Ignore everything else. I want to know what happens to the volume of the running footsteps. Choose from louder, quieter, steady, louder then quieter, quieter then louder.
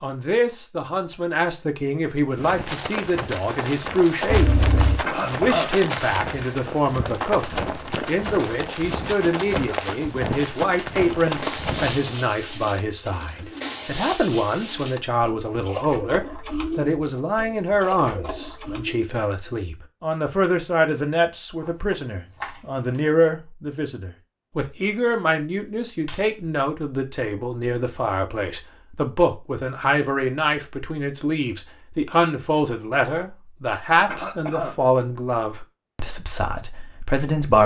steady.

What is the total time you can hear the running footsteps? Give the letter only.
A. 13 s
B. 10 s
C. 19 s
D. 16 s
B.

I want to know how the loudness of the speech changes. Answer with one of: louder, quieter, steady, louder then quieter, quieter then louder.
steady.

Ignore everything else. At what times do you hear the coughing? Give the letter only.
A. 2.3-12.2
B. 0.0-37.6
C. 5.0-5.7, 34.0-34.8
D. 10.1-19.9
C.